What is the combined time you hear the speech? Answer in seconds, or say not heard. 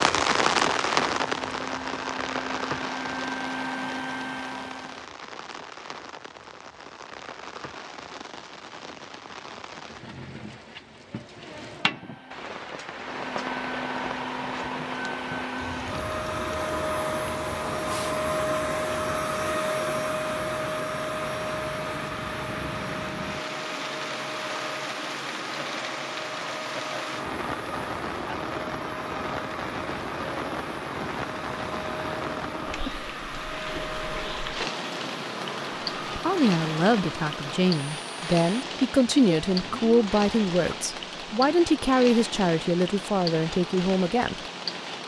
8 s.